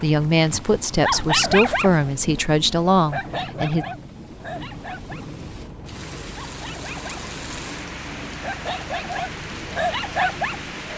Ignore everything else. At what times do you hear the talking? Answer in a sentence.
You can hear the talking from 0.0 to 3.9 s.